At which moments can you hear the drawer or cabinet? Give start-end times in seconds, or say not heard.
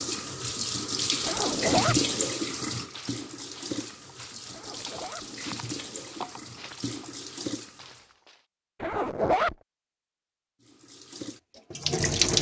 not heard.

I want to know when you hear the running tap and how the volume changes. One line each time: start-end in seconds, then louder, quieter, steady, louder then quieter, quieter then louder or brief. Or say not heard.
0.0-8.1 quieter
10.6-12.3 brief.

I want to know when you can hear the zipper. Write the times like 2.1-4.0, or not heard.
1.2-2.0, 4.5-5.2, 8.8-9.6.